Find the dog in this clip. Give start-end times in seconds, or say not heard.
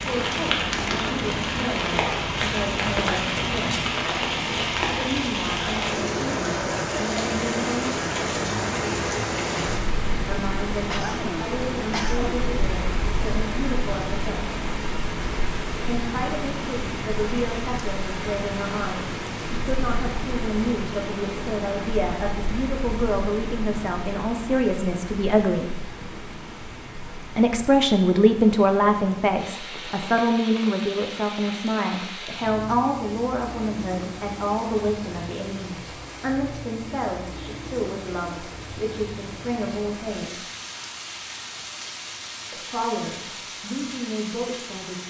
not heard.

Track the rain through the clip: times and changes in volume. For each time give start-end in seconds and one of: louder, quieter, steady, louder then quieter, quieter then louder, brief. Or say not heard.
0.0-45.0 quieter.